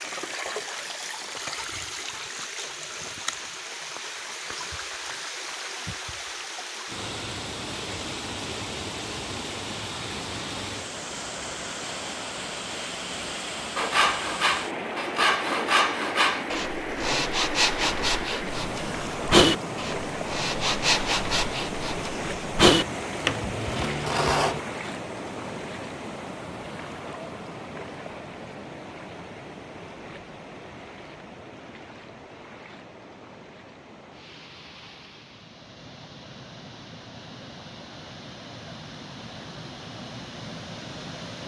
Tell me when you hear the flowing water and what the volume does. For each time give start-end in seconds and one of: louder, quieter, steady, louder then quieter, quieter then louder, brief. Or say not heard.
0.0-41.4 quieter.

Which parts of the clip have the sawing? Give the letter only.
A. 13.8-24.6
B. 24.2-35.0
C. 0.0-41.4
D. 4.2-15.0
A.